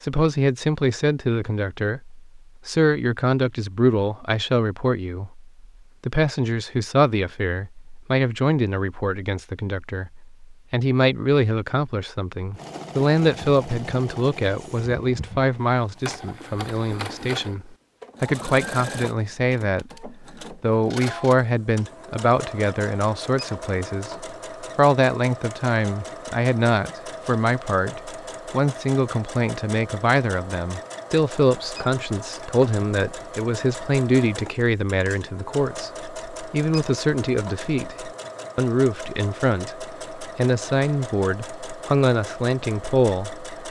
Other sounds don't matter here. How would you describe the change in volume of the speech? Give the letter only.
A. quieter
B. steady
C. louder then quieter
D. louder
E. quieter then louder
B.